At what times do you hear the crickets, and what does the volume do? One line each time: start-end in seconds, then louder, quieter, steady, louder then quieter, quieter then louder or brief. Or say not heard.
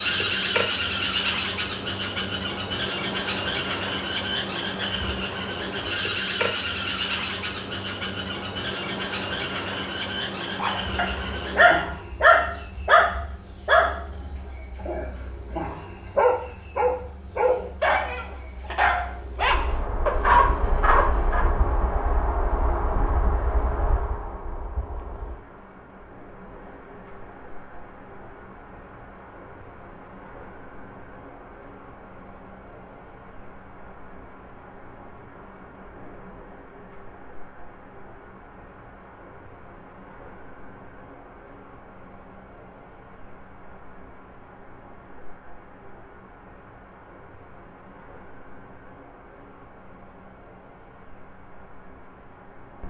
0.0-52.8 quieter.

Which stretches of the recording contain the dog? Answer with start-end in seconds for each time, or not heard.
10.6-21.5.